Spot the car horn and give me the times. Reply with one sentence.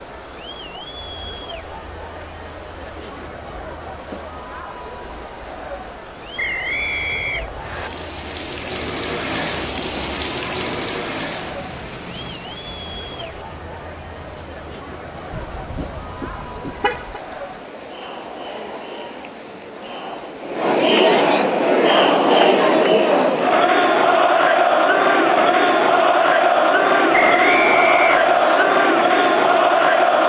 The car horn can be heard from 15.3 to 17.2 s.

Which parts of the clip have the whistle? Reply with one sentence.
You can hear the whistle from 6.3 to 7.9 s and from 27.1 to 28.6 s.